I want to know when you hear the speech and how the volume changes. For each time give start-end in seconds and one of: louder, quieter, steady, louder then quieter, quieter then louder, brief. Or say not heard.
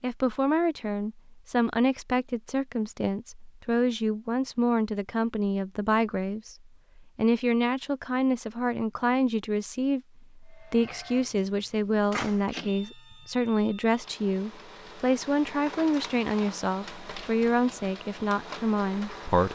0.0-19.5 steady.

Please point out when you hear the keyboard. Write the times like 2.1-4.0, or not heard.
not heard.